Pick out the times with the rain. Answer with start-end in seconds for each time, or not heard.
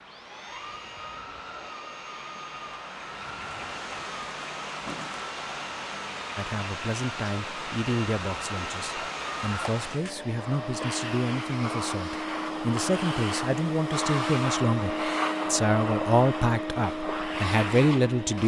0.0-10.2.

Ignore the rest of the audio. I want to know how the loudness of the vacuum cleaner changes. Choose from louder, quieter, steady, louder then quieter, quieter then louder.
louder.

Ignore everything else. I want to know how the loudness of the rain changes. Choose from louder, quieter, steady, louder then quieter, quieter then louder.
louder.